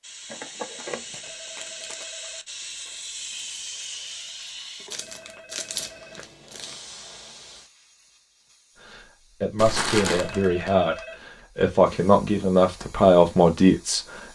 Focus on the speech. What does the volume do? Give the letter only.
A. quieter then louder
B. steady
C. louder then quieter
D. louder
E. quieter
D.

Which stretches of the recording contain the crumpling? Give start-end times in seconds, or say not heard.
0.3-2.0, 4.9-6.8, 9.6-10.8.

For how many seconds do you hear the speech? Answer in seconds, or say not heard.
5 s.